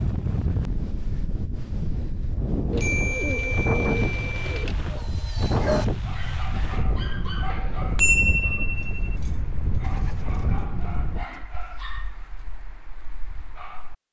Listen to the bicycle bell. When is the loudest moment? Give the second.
8 s.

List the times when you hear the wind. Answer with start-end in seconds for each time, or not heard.
0.0-11.2.